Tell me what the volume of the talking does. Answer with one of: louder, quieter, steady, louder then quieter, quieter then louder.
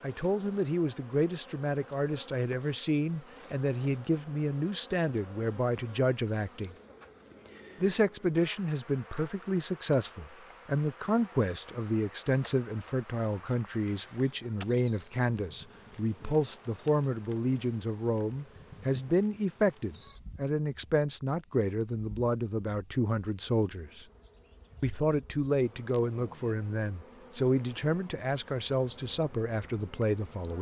steady.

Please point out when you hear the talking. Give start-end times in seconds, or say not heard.
0.0-6.8, 7.8-24.1, 24.8-30.5.